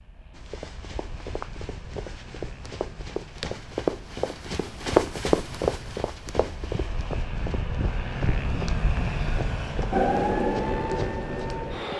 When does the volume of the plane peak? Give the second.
9 s.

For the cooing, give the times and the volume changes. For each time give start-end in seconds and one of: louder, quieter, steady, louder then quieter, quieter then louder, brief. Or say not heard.
not heard.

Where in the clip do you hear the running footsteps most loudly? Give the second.
5 s.